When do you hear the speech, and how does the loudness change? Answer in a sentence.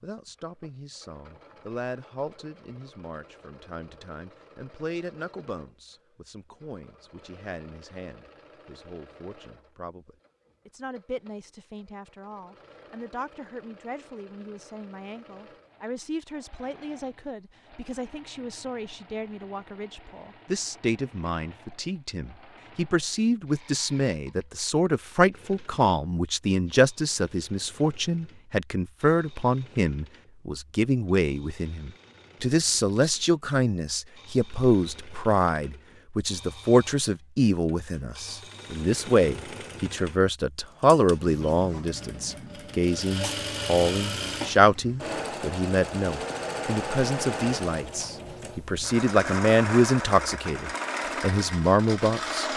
You can hear the speech from 0.0 to 52.5 s, getting louder.